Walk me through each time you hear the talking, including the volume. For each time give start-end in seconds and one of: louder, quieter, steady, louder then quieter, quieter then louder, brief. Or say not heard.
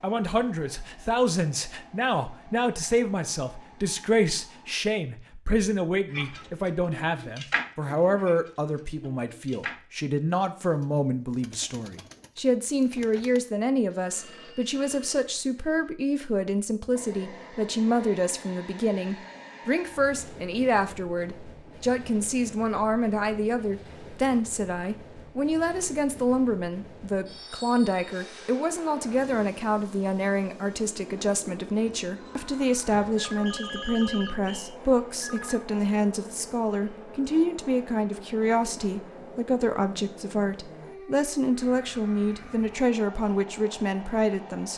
0.0-44.7 steady.